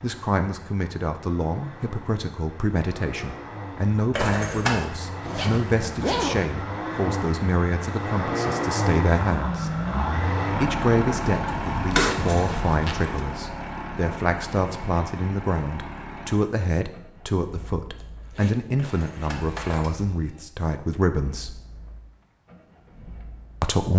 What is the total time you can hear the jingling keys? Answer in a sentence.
You can hear the jingling keys for 3 seconds altogether.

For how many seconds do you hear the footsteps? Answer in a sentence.
The footsteps can't be heard in this clip.